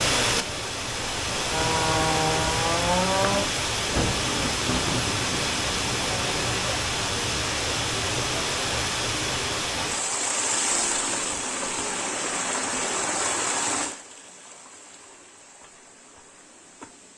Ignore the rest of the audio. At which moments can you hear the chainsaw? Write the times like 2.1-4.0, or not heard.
1.4-3.5.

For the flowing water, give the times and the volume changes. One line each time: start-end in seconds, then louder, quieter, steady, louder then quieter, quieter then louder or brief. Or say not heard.
0.0-17.1 quieter.